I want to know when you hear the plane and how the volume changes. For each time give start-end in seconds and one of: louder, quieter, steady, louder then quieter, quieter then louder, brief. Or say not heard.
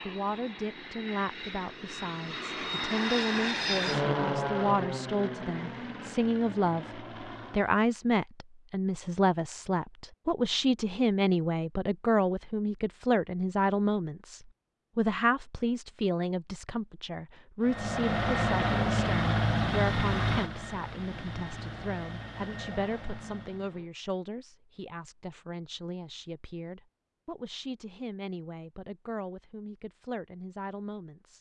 0.0-7.9 louder then quieter
17.6-23.9 quieter.